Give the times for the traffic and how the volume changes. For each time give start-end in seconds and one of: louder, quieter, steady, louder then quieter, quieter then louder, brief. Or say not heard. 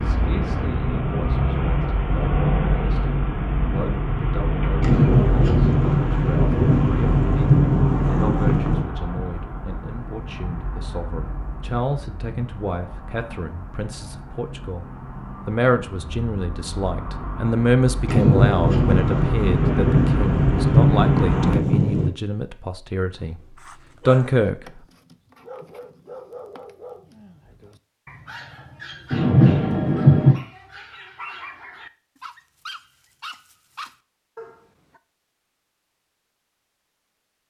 0.0-21.6 quieter then louder.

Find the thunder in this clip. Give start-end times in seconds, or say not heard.
4.8-8.8, 18.1-22.1, 29.1-30.4.